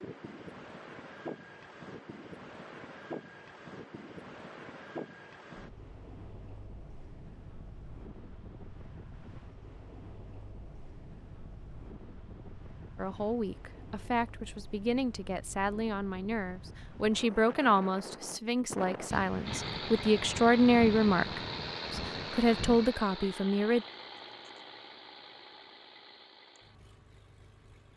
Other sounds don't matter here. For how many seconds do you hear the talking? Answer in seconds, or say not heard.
11 s.